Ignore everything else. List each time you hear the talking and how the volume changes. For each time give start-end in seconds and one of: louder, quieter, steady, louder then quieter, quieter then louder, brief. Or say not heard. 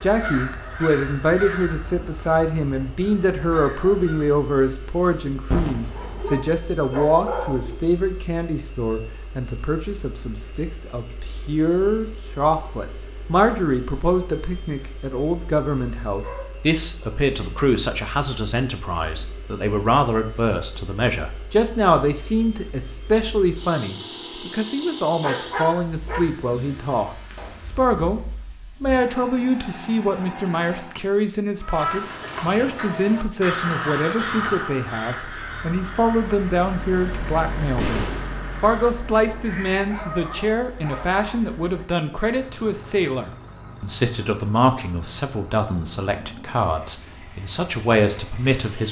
0.0-27.1 steady
27.7-28.2 brief
28.8-48.8 steady.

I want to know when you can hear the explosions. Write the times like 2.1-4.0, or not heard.
5.5-6.3, 27.3-27.8, 37.8-38.4.